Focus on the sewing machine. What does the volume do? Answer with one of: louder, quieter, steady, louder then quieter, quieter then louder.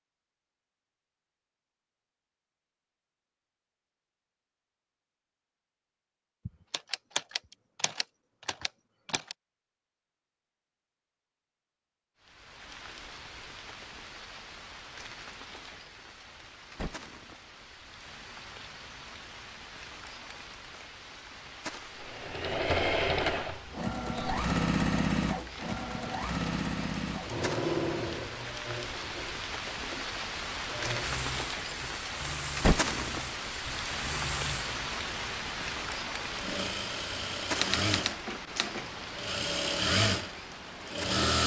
quieter then louder.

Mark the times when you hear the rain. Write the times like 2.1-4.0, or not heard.
12.2-41.2.